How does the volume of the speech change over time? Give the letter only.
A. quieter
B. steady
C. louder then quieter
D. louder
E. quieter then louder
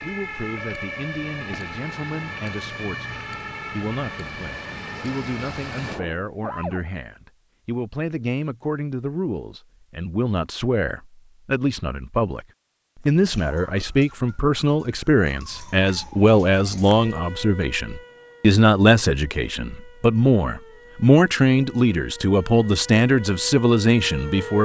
D.